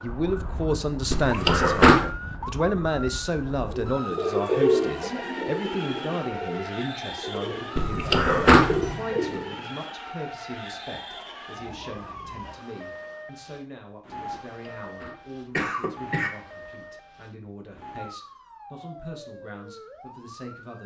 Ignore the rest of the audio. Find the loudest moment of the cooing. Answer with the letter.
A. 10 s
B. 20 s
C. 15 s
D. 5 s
D.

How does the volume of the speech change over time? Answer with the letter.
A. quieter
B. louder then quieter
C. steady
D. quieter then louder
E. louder
A.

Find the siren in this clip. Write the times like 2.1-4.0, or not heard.
0.0-20.8.